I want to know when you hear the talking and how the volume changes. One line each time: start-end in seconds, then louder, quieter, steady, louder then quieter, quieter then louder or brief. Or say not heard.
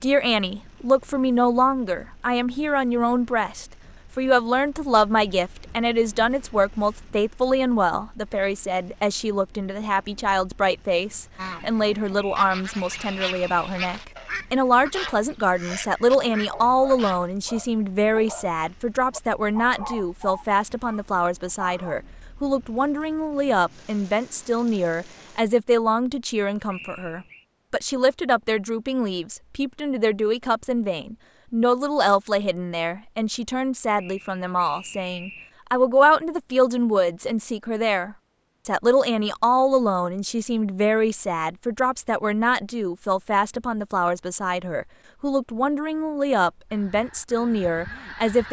0.0-48.4 steady.